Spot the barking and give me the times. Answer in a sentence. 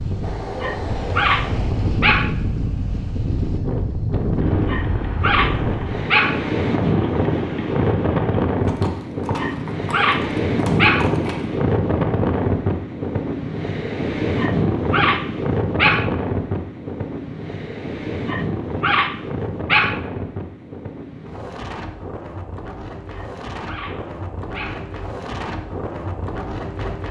You can hear the barking from 0.6 to 2.3 s, from 4.7 to 6.4 s, from 9.3 to 11.1 s, from 14.3 to 16.1 s, from 18.2 to 20.0 s and from 23.1 to 24.9 s.